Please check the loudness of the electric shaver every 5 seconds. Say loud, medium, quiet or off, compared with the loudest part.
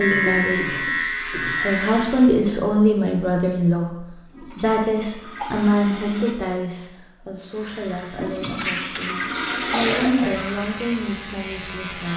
loud, quiet, medium.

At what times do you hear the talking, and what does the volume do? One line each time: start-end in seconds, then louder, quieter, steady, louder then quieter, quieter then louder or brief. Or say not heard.
0.0-0.8 brief
1.4-12.1 quieter then louder.